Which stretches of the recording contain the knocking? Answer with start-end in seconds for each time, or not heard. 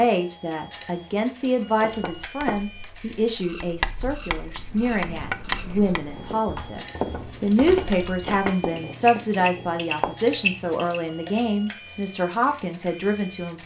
1.8-2.5, 7.0-8.6.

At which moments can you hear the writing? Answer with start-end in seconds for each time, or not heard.
2.0-10.2.